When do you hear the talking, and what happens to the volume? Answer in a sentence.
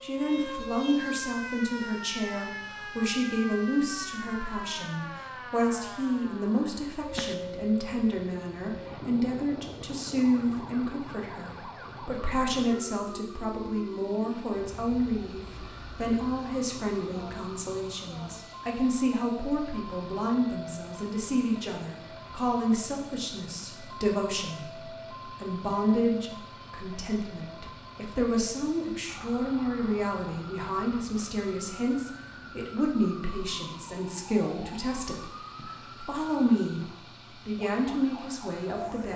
You can hear the talking from 0.0 to 39.1 s, at a steady volume.